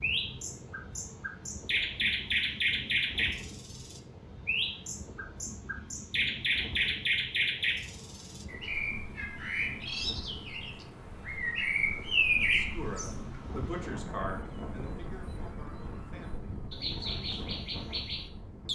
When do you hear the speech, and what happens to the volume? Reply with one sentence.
You can hear the speech from 12.3 to 17.4 s, getting quieter.